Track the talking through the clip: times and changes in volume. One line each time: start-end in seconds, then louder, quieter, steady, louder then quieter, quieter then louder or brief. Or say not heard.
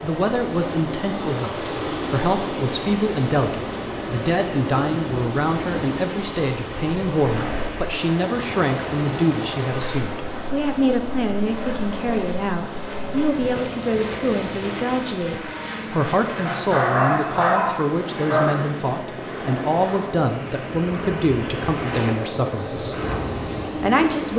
0.0-24.3 steady.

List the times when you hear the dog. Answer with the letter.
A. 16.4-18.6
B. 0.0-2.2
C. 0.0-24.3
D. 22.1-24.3
A.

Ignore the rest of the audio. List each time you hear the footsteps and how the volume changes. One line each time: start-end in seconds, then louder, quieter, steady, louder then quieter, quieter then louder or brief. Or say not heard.
not heard.